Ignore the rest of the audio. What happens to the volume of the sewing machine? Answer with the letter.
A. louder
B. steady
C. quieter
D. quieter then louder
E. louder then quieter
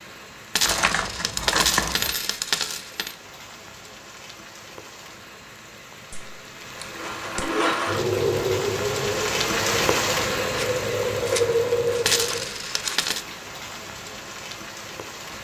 D.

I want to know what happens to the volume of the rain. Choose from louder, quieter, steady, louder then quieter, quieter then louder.
louder then quieter.